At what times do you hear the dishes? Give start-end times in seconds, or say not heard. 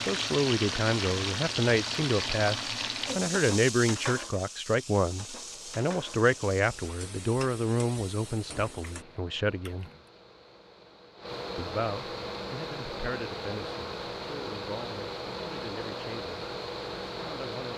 not heard.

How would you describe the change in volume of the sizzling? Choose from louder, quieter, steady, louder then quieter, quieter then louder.
quieter.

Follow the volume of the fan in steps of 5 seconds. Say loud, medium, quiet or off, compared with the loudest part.
off, quiet, loud, loud.